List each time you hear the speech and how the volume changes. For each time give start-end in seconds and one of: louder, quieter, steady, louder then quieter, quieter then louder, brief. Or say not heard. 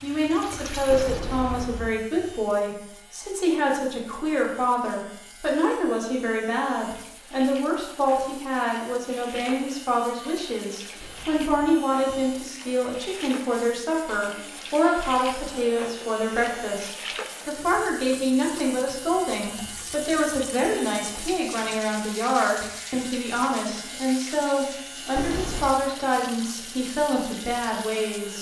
0.0-28.3 steady.